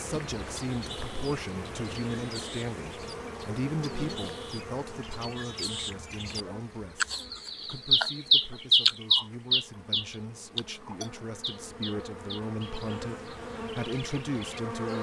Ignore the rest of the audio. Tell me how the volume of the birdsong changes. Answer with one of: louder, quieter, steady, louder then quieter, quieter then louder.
louder then quieter.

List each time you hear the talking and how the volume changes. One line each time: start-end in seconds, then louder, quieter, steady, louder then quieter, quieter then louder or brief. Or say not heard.
0.0-14.9 quieter then louder.